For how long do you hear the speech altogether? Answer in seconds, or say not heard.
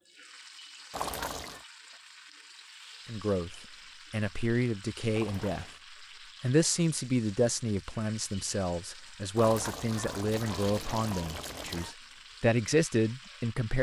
10 s.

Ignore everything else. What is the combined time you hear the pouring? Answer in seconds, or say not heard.
4 s.